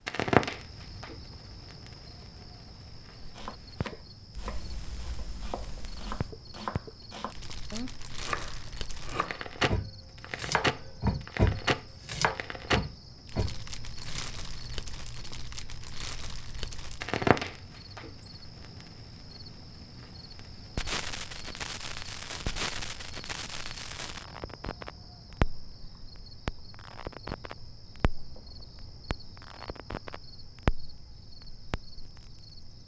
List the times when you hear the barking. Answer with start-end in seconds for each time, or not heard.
not heard.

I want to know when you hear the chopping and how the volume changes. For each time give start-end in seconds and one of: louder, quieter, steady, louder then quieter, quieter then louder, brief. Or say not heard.
3.3-14.2 louder.